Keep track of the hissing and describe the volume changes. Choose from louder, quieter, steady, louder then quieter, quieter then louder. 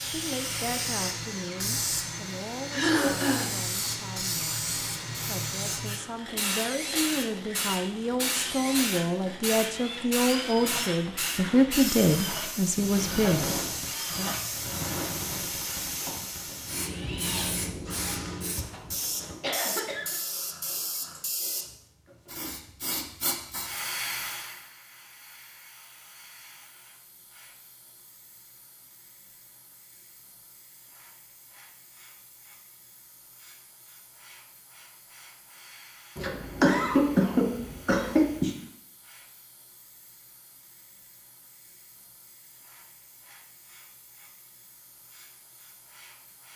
quieter.